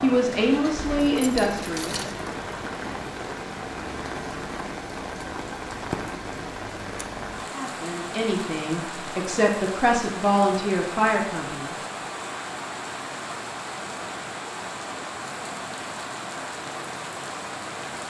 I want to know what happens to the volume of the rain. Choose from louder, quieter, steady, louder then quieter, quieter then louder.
steady.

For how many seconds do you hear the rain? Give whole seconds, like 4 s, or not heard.
18 s.